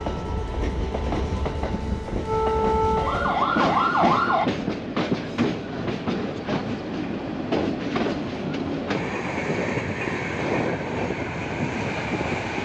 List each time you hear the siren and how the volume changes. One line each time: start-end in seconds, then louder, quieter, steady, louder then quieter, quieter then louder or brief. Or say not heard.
0.0-4.5 louder.